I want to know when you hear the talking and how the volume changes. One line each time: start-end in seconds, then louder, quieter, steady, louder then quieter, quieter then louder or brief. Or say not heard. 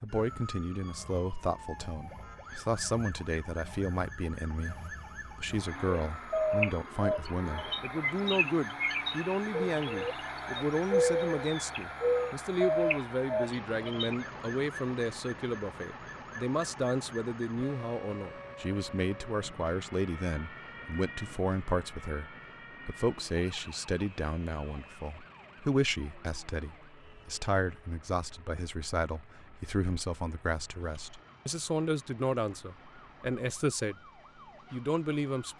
0.0-34.0 steady
34.7-35.5 brief.